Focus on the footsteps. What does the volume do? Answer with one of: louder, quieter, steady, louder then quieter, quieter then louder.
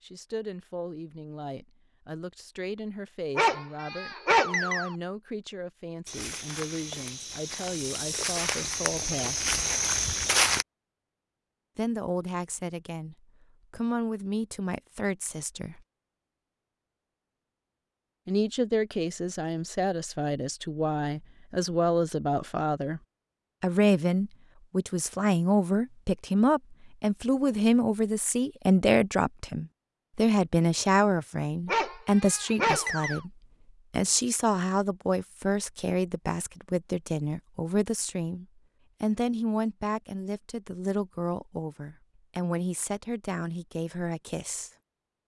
louder.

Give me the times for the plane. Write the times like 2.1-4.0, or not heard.
not heard.